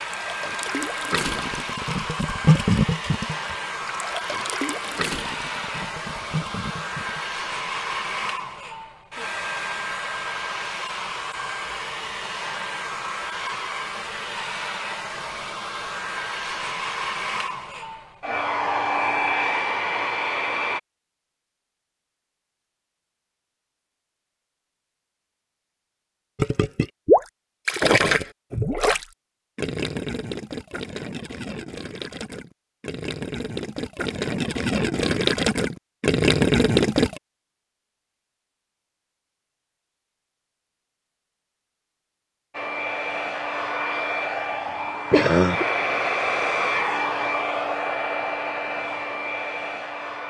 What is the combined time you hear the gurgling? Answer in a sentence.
You can hear the gurgling for 18 seconds altogether.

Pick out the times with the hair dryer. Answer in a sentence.
You can hear the hair dryer from 0.0 to 20.8 s and from 42.5 to 50.2 s.